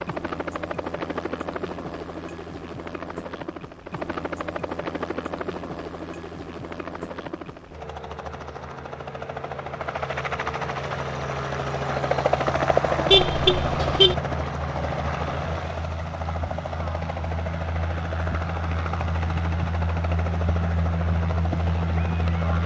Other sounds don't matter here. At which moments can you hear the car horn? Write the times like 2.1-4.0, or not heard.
13.1-14.2.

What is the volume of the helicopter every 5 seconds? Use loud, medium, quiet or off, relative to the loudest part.
medium, medium, loud, medium, loud.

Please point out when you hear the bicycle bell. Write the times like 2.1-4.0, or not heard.
not heard.